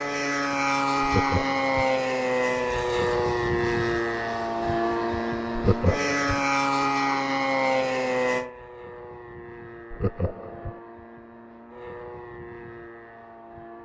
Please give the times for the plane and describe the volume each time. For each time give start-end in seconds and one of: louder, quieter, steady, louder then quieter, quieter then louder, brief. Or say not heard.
0.0-13.8 quieter.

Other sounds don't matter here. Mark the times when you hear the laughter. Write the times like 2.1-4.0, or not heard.
1.0-1.7, 5.5-6.5, 9.9-10.8.